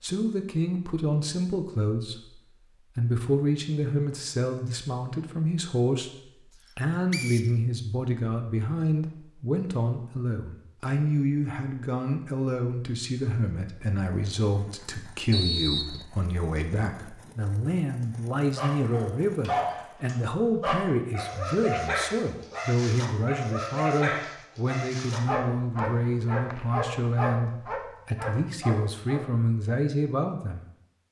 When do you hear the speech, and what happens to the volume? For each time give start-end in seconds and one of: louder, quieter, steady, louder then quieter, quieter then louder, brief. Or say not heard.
0.0-31.0 steady.